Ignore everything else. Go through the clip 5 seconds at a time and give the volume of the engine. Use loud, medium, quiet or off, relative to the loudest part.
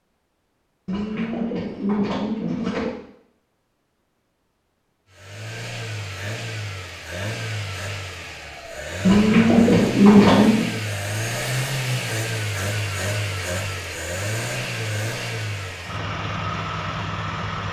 off, medium, loud, loud.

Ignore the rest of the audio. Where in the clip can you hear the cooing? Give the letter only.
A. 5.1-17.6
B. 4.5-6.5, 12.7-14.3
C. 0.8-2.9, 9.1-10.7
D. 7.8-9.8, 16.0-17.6
C.